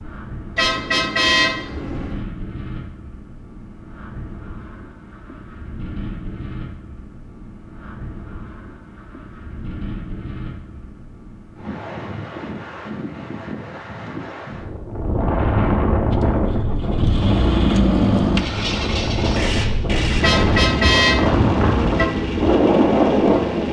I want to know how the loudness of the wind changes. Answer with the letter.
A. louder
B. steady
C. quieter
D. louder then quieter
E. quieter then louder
A.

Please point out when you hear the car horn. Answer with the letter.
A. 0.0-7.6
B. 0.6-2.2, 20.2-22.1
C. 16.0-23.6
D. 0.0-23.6
B.